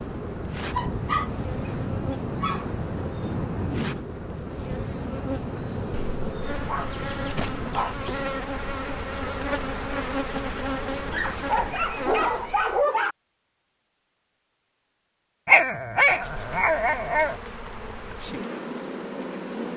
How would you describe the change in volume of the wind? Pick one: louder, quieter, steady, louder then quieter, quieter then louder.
quieter.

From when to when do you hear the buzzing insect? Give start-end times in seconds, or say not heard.
0.0-12.8, 15.9-19.7.